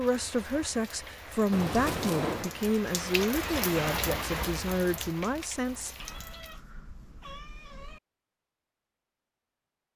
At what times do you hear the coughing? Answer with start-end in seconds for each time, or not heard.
not heard.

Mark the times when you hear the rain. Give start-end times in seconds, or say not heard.
0.0-6.6.